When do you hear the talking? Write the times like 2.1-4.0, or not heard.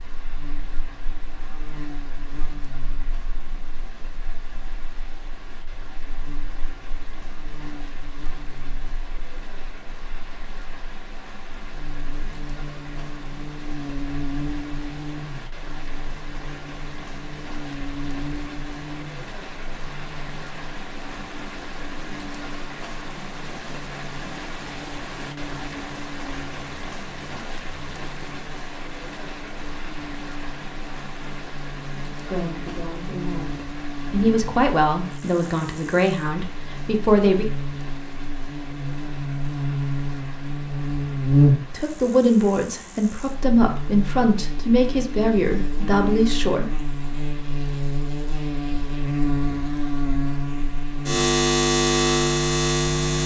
32.2-37.5, 41.7-46.8.